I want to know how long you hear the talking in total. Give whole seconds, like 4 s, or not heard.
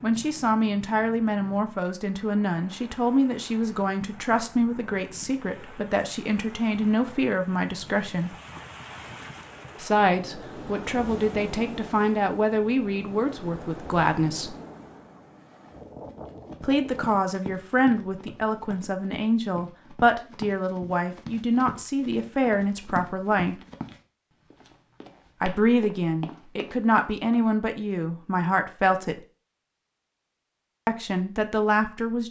25 s.